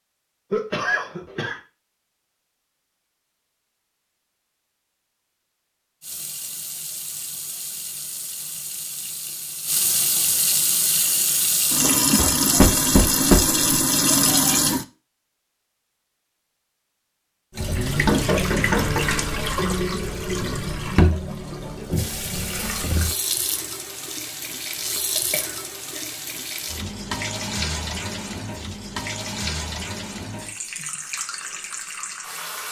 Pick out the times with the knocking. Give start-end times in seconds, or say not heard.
12.6-13.6, 17.6-19.1.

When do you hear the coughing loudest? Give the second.
1 s.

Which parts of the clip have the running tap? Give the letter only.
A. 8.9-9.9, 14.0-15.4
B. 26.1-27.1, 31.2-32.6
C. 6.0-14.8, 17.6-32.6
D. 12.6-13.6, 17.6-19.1
C.